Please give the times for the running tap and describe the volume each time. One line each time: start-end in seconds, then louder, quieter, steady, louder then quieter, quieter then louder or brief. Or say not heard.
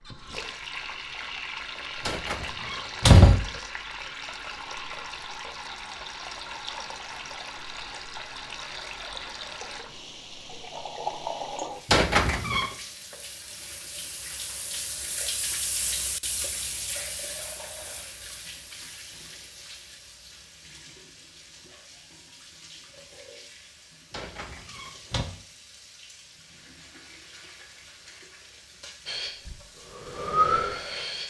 0.0-31.2 quieter.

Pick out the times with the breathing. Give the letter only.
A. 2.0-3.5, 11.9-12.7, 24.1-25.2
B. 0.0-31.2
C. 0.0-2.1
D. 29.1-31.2
D.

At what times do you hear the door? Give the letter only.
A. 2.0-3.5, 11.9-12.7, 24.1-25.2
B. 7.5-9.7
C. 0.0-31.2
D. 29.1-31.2
A.